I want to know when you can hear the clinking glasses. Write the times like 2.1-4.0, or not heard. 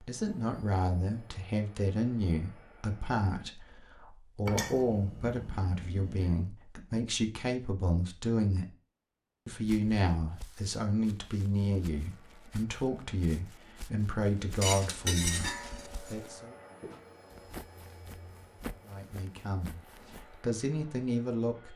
4.5-6.5, 14.6-16.1.